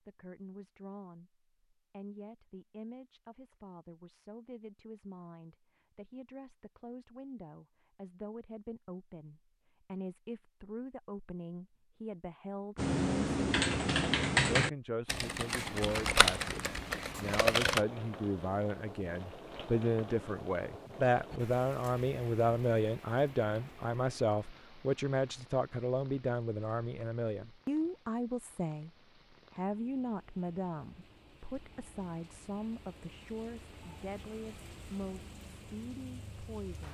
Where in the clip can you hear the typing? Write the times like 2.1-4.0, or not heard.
12.8-17.8.